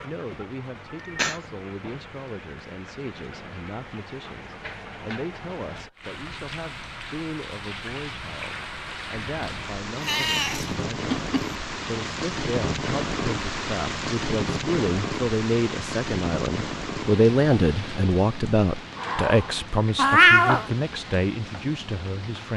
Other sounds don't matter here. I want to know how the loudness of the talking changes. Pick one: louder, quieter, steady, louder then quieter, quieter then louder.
louder.